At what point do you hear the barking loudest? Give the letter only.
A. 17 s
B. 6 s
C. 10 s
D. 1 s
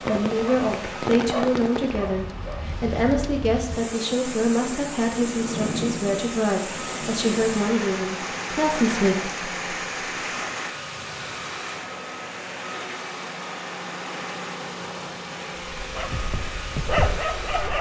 A.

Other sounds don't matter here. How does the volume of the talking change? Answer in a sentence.
The loudness of the talking stays about the same.